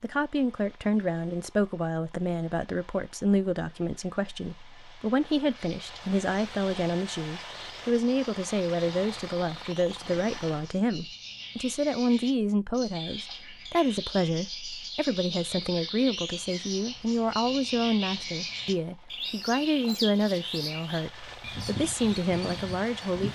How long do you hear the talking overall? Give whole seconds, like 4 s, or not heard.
23 s.